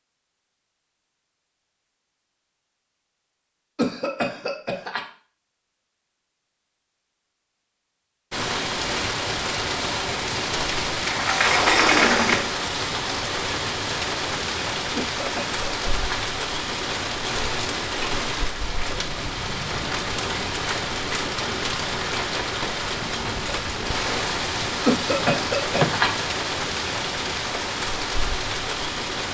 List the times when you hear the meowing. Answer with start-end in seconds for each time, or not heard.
not heard.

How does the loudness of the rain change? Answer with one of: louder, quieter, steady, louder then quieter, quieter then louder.
steady.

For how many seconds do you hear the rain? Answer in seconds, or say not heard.
21 s.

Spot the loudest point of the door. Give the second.
12 s.